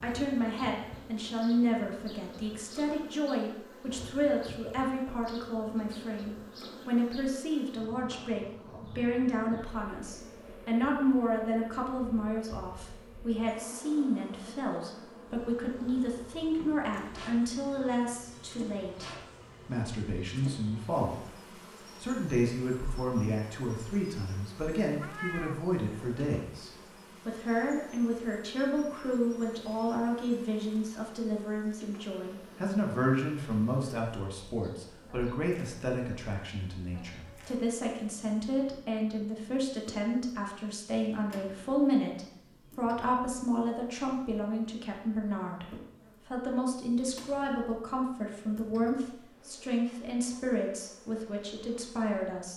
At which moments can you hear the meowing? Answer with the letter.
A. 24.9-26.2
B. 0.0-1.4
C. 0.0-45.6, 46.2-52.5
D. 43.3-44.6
A.